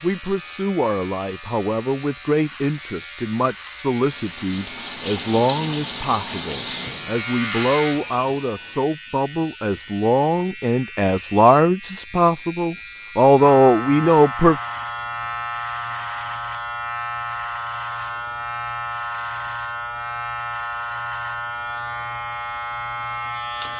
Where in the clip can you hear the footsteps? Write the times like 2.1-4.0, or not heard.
not heard.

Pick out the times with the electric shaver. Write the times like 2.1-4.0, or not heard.
0.0-23.7.